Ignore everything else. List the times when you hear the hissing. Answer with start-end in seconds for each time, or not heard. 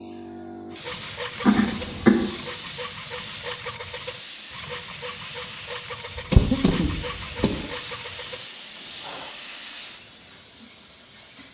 0.0-11.4.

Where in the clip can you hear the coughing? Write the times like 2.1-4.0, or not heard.
1.4-2.4, 6.2-7.7.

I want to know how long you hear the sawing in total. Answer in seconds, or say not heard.
9 s.